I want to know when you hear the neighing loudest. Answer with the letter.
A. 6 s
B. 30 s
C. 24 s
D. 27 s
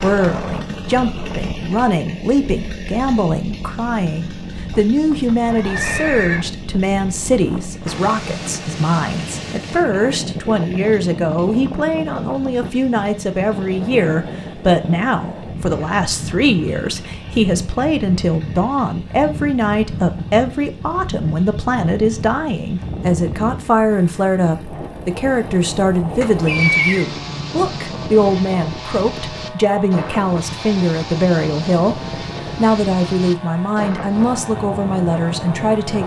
D.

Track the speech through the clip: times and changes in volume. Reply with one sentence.
You can hear the speech from 0.0 to 36.0 s, at a steady volume.